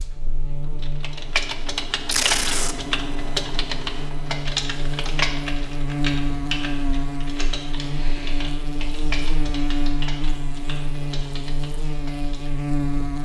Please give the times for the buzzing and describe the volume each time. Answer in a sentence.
The buzzing can be heard from 0.0 to 13.1 s, getting louder.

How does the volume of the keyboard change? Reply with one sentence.
The volume of the keyboard goes down.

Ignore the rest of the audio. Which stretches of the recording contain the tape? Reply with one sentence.
The tape can be heard from 2.0 to 2.8 s.